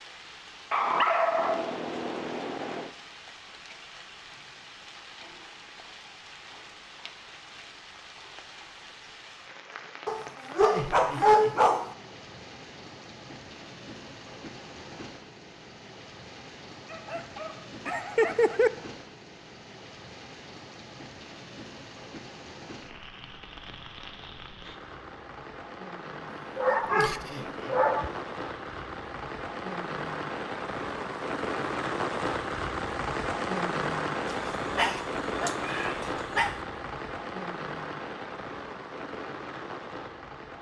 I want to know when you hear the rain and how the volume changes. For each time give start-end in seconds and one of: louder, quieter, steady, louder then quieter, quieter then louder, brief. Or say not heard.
0.0-40.5 louder.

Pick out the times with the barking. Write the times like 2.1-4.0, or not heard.
0.7-2.9, 10.1-11.9, 16.9-18.7, 26.6-28.1, 34.2-36.6.